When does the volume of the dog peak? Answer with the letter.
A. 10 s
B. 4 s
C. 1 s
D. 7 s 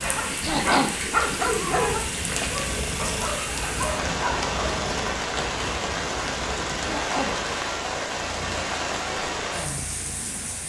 C.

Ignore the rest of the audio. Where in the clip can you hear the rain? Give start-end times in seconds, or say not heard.
0.0-10.6.